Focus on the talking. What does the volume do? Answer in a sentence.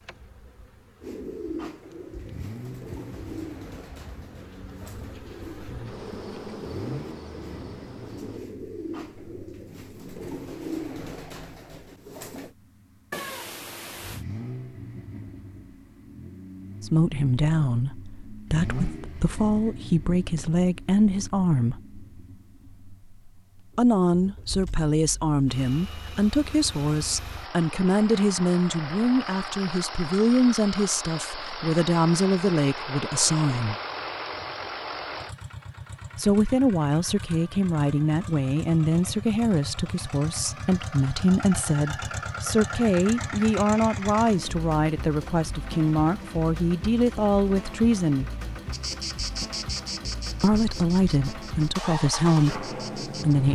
The loudness of the talking stays about the same.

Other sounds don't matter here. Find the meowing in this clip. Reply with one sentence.
The meowing can be heard from 13.1 to 14.2 s.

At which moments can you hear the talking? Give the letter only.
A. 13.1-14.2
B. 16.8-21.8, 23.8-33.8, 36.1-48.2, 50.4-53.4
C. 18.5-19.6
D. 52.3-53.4
B.